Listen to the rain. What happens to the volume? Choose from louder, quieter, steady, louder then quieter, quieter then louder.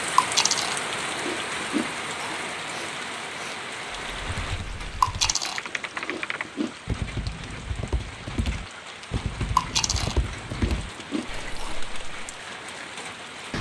quieter.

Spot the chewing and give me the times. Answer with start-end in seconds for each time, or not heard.
0.1-2.6, 5.0-6.8, 9.6-11.8.